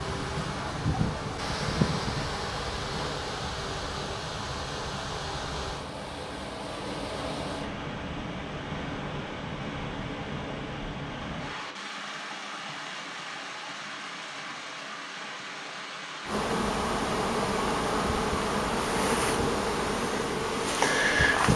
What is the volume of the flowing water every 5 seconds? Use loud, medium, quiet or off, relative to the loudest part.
loud, loud, loud, medium, off.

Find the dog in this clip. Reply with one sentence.
The dog can't be heard in this clip.